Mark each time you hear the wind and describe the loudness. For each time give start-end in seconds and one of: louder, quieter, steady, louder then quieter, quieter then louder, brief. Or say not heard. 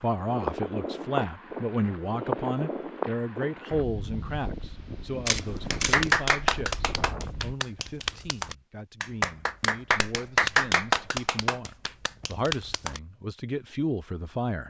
0.0-7.5 quieter.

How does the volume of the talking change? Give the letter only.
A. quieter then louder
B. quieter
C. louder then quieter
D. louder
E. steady
A.